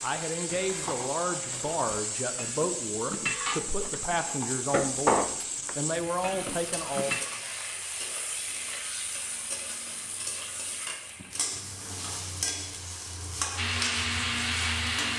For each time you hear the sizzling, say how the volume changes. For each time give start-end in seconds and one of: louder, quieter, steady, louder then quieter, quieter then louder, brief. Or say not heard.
0.0-15.1 steady.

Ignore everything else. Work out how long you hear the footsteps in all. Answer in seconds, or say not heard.
not heard.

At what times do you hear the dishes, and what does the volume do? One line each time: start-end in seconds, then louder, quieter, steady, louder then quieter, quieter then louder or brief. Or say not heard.
0.1-7.4 louder then quieter.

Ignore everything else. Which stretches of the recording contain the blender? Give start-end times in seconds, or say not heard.
13.6-15.1.